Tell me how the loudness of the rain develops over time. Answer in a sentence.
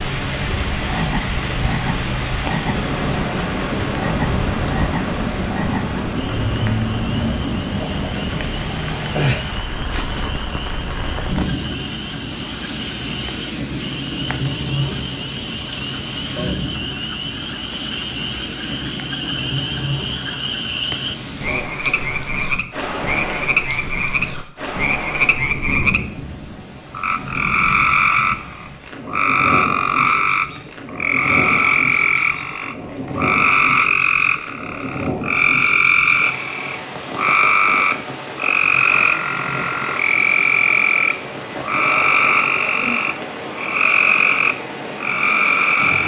The volume of the rain goes down.